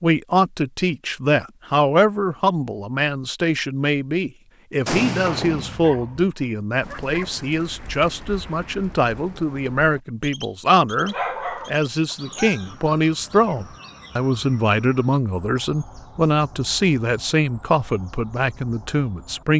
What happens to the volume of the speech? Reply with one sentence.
The volume of the speech stays about the same.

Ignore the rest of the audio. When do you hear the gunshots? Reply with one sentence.
You can hear the gunshots from 4.8 to 6.3 s.